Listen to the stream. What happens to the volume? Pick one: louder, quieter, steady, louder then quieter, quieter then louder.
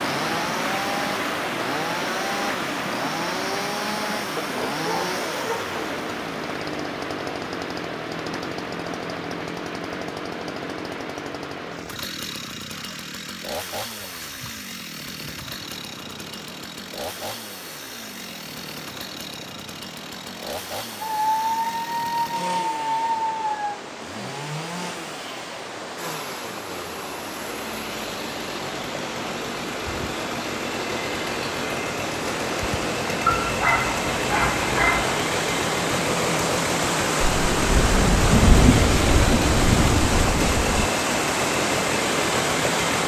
quieter then louder.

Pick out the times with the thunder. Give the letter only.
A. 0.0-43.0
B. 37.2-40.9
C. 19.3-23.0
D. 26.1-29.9
B.